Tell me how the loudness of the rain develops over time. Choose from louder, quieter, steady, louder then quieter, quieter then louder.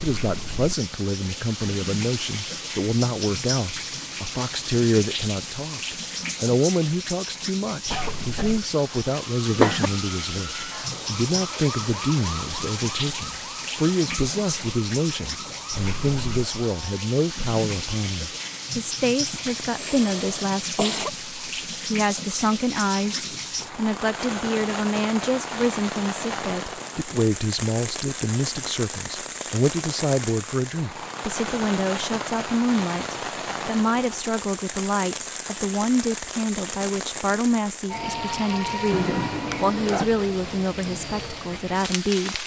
steady.